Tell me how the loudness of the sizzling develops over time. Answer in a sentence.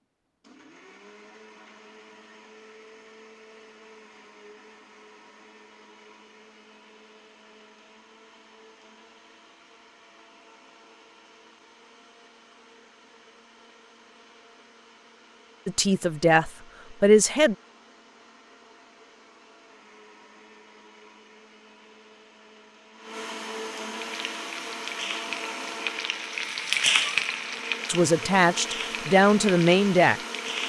The loudness of the sizzling goes up, then down.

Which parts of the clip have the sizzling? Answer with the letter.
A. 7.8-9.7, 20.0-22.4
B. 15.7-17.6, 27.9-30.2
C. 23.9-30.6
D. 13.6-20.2
C.